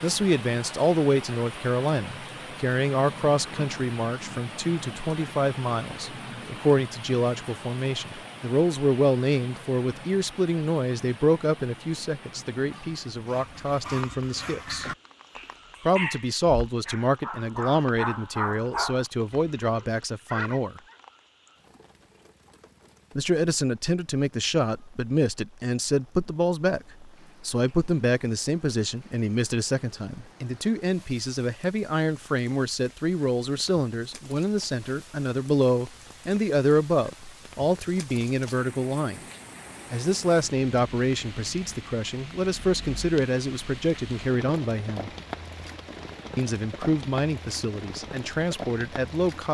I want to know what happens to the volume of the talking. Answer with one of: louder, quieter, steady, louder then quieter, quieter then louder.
steady.